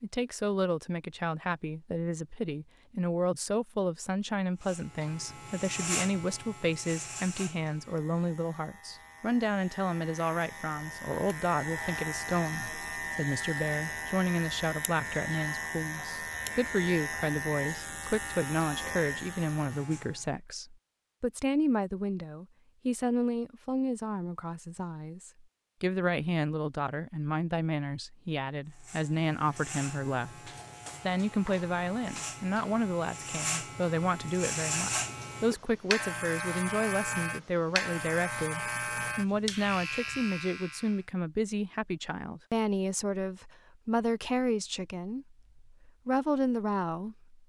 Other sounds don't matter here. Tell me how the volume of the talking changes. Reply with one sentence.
The volume of the talking stays about the same.